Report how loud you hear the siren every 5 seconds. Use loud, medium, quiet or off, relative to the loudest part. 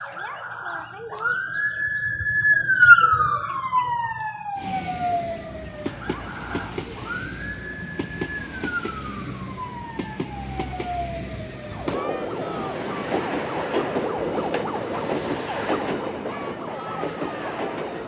loud, quiet, quiet, quiet.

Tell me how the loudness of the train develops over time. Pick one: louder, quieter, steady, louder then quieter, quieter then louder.
louder.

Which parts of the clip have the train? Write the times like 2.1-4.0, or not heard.
4.5-18.0.